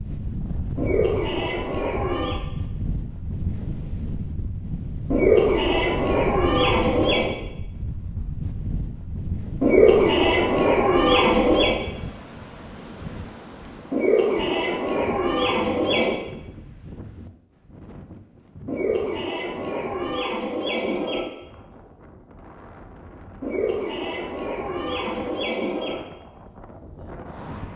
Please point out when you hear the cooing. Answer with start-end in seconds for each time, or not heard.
0.8-2.4, 5.1-7.3, 9.6-11.8, 13.9-16.1, 18.6-21.2, 23.4-26.0.